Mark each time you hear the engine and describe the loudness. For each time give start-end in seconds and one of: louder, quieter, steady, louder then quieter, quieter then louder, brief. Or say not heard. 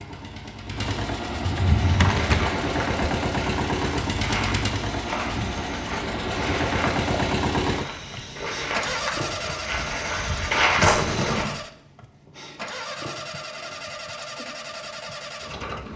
0.0-15.9 quieter.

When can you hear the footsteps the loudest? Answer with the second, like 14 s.
11 s.